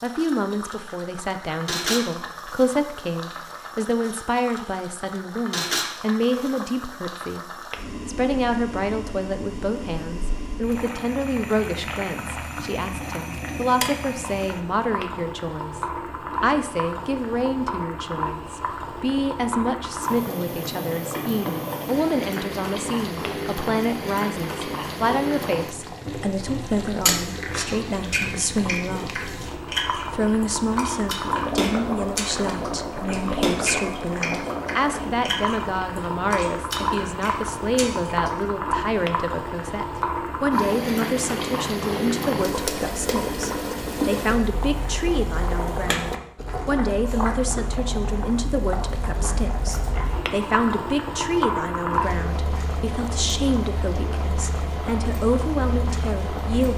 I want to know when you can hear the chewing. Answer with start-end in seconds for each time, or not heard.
27.9-38.4.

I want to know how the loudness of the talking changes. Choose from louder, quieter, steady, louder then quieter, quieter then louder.
steady.